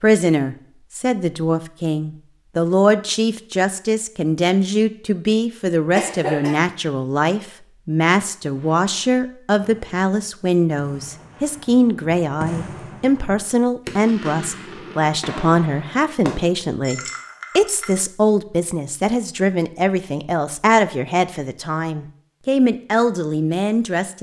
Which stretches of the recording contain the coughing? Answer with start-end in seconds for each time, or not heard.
5.9-6.6.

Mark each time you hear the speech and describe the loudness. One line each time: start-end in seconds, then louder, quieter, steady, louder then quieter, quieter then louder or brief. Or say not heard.
0.0-24.1 steady.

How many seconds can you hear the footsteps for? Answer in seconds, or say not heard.
not heard.